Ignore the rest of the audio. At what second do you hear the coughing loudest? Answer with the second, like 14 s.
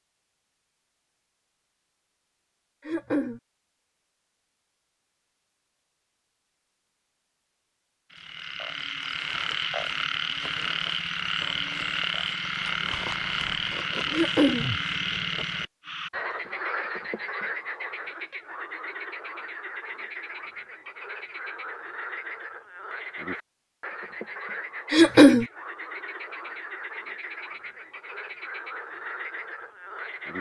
25 s.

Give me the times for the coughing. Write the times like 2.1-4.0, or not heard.
2.8-3.4, 14.1-14.7, 24.9-25.4.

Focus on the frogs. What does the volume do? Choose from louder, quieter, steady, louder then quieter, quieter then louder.
quieter.